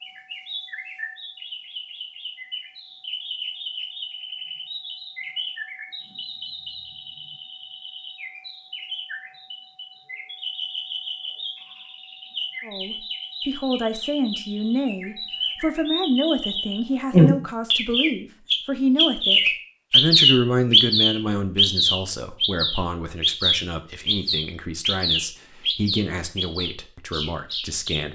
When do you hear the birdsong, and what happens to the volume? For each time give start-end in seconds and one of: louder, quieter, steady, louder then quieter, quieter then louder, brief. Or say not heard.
0.0-28.1 louder then quieter.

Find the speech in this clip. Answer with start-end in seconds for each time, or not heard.
12.7-28.1.